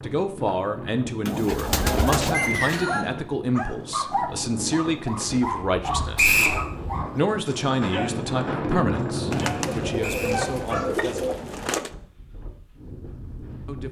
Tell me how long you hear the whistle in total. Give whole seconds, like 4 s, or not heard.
2 s.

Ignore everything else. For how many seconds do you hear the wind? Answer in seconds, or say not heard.
14 s.